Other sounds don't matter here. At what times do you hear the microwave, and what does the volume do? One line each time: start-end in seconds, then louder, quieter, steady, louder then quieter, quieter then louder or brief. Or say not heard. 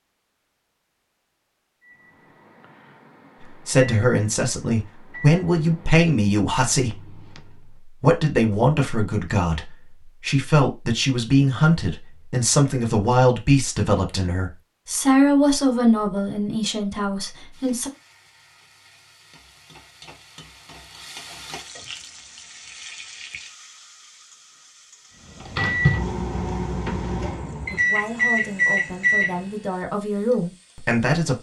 1.8-7.8 louder then quieter
25.4-29.4 quieter then louder.